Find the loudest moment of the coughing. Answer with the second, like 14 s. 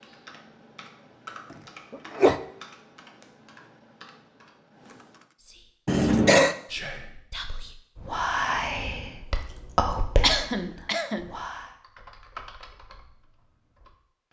6 s.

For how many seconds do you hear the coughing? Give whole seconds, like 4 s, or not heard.
2 s.